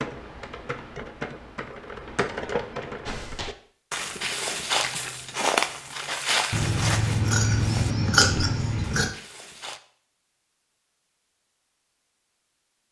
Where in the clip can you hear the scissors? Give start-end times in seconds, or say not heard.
6.5-9.1.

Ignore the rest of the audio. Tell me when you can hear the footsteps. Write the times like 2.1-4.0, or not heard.
3.0-9.8.